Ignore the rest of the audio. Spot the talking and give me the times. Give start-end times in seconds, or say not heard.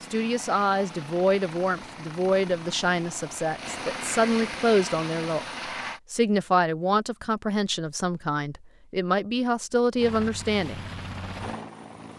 0.0-5.5, 6.1-10.8.